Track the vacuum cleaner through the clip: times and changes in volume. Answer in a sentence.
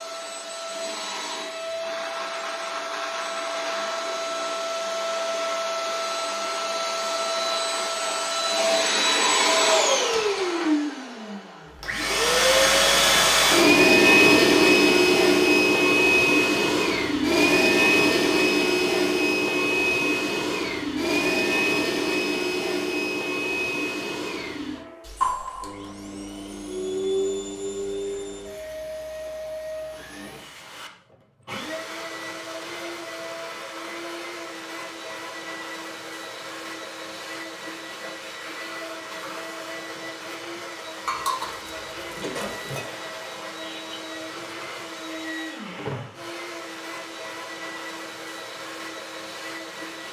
You can hear the vacuum cleaner from 0.0 to 50.0 s, getting louder then quieter.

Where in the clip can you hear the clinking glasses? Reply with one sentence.
You can hear the clinking glasses from 41.0 to 42.9 s.